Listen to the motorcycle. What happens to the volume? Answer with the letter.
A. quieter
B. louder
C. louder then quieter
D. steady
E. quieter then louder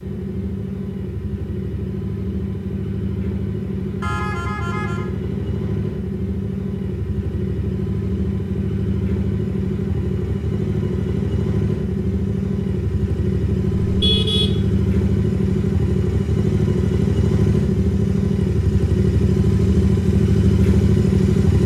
B.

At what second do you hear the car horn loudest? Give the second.
14 s.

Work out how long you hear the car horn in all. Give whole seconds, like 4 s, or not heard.
2 s.